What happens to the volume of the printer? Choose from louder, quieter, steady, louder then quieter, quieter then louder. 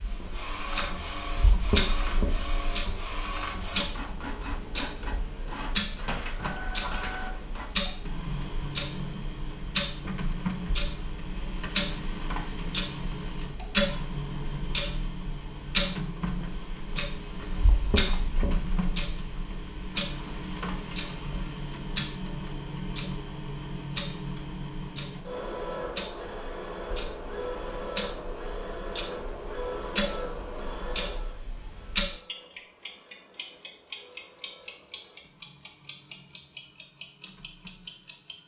quieter.